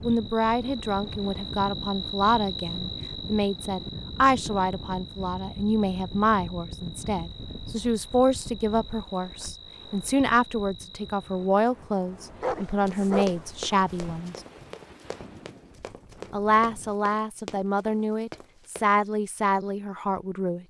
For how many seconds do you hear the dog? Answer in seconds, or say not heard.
2 s.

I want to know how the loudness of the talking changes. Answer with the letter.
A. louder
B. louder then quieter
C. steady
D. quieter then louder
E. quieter
C.